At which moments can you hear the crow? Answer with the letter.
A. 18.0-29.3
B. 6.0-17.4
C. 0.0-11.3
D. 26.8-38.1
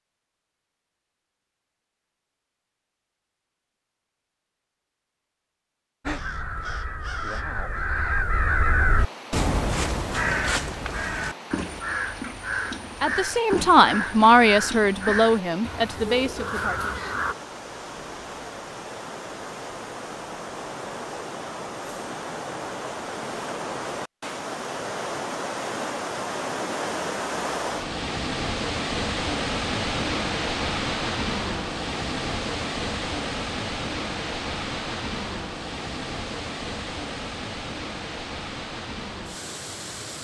B.